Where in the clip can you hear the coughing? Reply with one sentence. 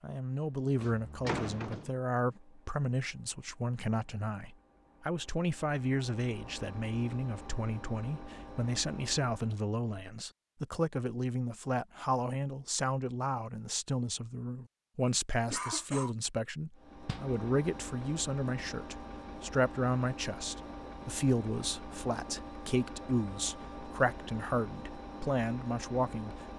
You can hear the coughing from 15.5 to 16.1 s.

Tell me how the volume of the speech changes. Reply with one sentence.
The loudness of the speech stays about the same.